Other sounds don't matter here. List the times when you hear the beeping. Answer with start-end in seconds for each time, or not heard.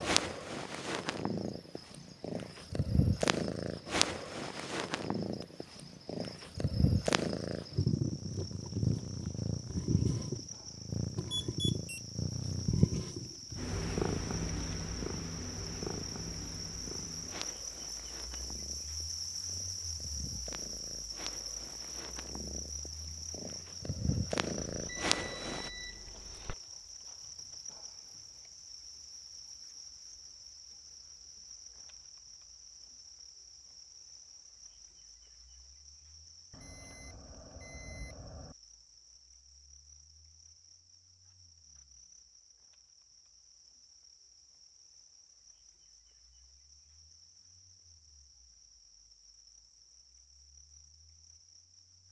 11.3-12.0, 24.8-26.6, 36.5-38.5.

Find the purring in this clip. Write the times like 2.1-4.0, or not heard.
0.0-25.7.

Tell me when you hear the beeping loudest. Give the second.
12 s.